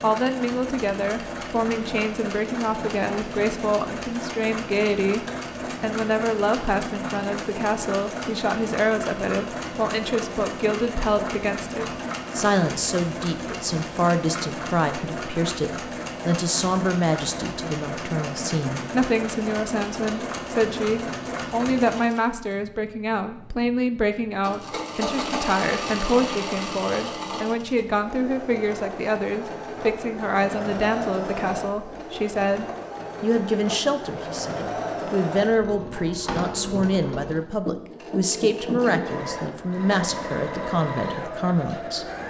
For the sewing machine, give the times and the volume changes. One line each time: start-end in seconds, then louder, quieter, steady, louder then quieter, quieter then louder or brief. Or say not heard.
0.0-42.2 steady.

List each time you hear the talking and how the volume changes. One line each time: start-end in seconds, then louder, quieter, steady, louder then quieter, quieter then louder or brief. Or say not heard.
0.0-42.0 steady.